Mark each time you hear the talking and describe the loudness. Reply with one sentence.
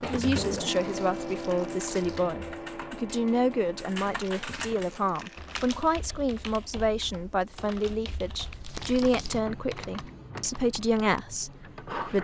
You can hear the talking from 0.0 to 12.1 s, at a steady volume.